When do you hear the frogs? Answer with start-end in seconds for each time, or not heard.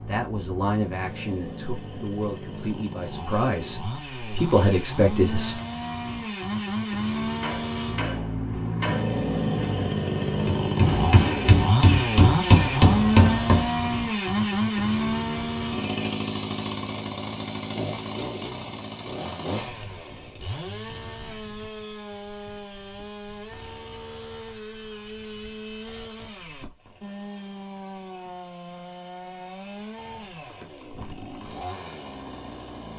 not heard.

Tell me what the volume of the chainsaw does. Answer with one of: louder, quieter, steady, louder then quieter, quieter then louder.
louder then quieter.